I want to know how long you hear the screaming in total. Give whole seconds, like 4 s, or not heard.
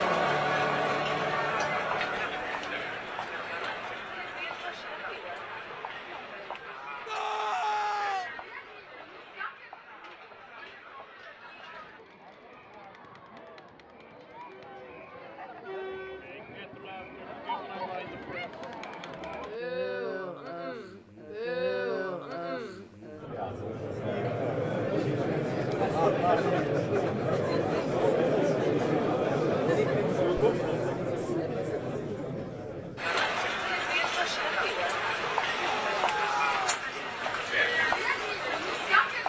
2 s.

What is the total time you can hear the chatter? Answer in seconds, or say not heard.
39 s.